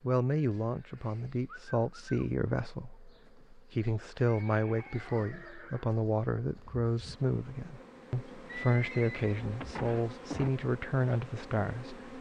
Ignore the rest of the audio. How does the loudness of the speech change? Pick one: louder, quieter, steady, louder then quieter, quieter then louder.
steady.